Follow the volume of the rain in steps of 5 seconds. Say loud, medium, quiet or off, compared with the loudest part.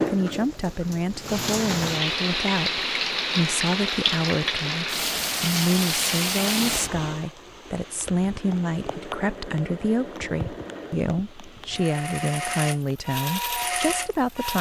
loud, loud, quiet.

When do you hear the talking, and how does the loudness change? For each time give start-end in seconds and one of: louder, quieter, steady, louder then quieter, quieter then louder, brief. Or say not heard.
0.1-14.5 steady.